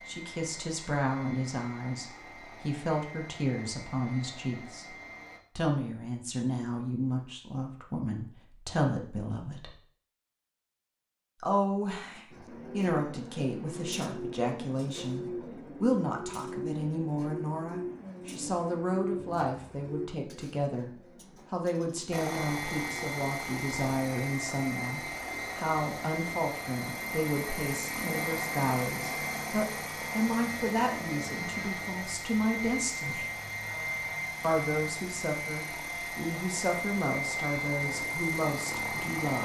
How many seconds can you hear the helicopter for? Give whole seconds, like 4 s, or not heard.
23 s.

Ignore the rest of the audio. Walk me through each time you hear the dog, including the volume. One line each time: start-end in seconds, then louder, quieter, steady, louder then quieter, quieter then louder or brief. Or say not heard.
not heard.